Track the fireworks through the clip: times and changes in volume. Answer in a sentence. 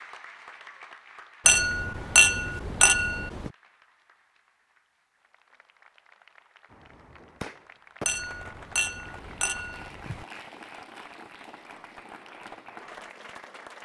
You can hear the fireworks from 6.7 to 13.1 s, getting quieter.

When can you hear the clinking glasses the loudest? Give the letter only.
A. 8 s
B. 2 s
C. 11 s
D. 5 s
B.